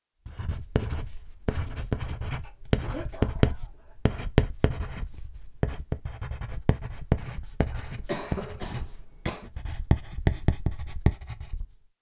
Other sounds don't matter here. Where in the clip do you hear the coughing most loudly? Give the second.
8 s.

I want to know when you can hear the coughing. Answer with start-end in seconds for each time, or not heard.
2.4-4.2, 7.7-9.5.